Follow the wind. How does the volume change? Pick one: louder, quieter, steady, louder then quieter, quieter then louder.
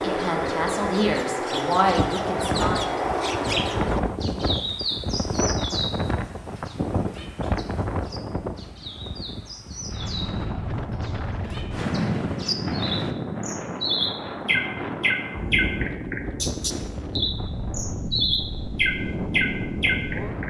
steady.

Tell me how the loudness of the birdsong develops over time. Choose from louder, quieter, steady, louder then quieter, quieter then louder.
quieter then louder.